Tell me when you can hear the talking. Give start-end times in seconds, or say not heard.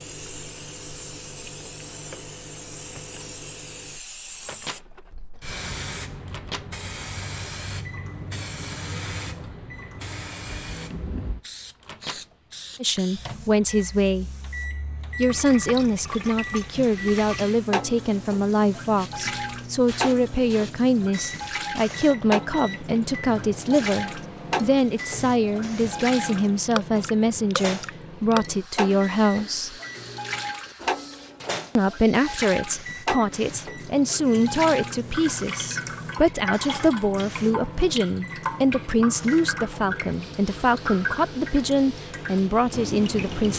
12.8-14.2, 15.2-29.8, 31.8-43.5.